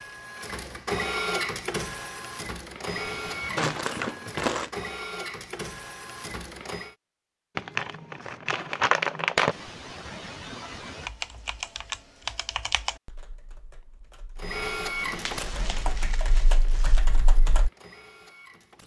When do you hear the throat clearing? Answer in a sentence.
You can hear the throat clearing from 2.9 to 3.8 s, from 9.5 to 11.1 s and from 14.9 to 15.9 s.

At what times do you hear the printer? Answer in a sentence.
You can hear the printer from 0.0 to 7.0 s and from 14.3 to 18.8 s.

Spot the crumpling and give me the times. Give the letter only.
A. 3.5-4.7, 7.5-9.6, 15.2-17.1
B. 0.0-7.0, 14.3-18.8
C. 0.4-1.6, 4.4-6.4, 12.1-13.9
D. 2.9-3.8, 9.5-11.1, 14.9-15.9
A.